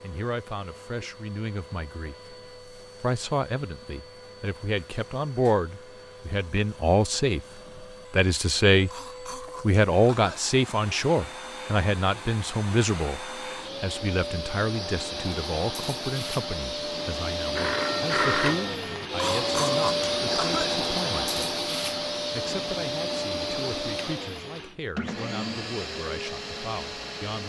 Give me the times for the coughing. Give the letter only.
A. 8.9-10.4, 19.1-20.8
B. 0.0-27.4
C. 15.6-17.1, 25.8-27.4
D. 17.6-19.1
A.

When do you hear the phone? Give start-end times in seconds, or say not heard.
17.6-19.1.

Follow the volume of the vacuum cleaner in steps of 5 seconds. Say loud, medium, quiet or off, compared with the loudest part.
quiet, quiet, medium, loud, loud, medium.